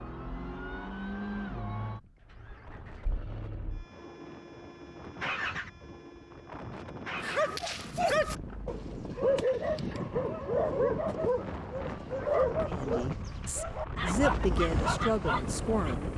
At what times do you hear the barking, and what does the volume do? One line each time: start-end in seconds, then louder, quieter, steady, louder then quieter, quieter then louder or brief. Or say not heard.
7.2-15.9 steady.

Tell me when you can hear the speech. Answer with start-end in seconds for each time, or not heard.
12.7-16.1.